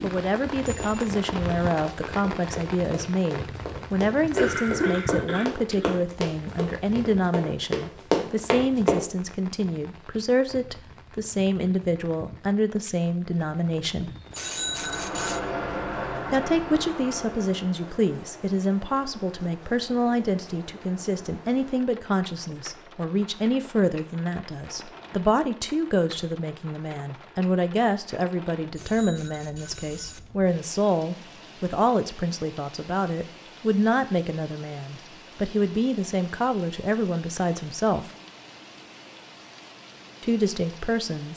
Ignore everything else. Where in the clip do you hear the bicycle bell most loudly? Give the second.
15 s.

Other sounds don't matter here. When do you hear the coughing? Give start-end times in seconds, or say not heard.
4.2-5.9.